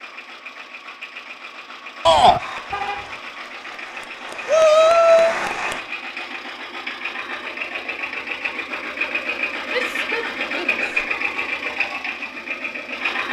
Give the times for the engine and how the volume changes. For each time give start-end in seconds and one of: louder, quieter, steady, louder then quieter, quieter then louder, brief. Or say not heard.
0.0-13.2 louder.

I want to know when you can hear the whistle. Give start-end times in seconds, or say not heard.
not heard.